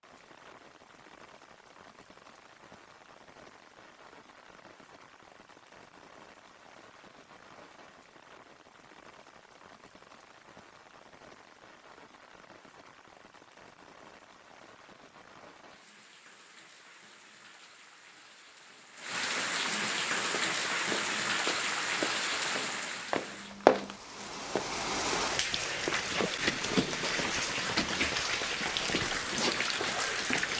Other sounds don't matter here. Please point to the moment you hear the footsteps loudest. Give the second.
24 s.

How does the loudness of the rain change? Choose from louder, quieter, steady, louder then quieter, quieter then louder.
louder.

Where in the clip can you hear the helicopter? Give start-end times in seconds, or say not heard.
not heard.